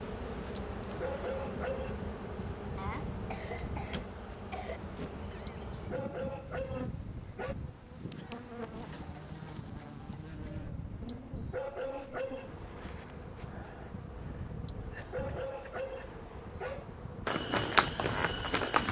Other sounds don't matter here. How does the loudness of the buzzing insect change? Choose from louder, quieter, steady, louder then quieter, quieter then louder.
quieter.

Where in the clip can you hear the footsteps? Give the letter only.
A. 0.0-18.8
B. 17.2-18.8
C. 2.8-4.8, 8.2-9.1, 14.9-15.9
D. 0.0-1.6
B.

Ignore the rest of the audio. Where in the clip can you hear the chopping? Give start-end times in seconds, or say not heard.
not heard.